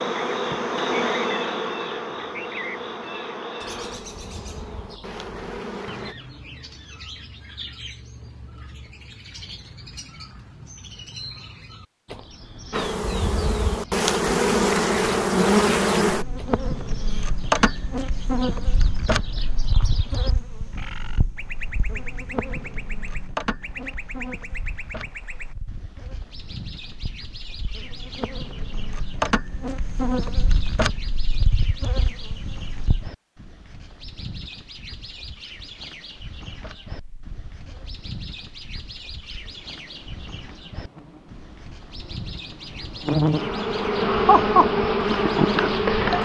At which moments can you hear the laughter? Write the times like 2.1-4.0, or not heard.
44.0-44.7.